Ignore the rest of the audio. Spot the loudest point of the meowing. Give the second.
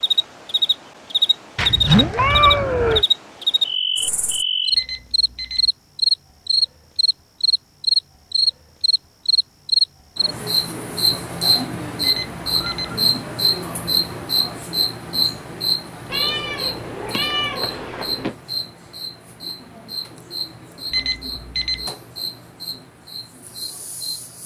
2 s.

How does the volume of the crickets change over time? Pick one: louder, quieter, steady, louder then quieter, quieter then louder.
quieter.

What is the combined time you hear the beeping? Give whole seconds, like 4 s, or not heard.
3 s.